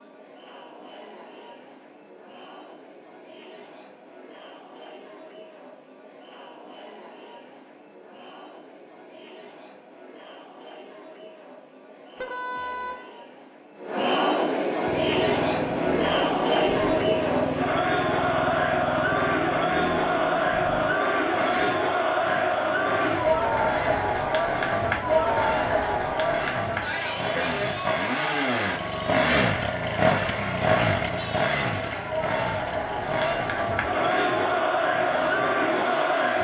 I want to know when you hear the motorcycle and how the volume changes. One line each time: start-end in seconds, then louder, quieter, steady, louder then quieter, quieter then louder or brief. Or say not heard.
14.8-36.3 louder then quieter.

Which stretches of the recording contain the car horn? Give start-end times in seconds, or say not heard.
12.2-13.1.